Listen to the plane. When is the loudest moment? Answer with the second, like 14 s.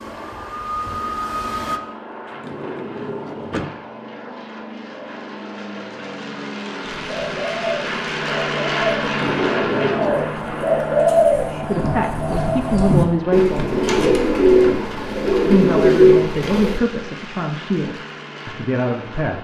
9 s.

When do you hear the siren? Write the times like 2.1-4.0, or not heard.
0.0-1.8.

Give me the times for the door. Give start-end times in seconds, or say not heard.
2.2-3.8, 9.0-10.3, 13.4-14.2.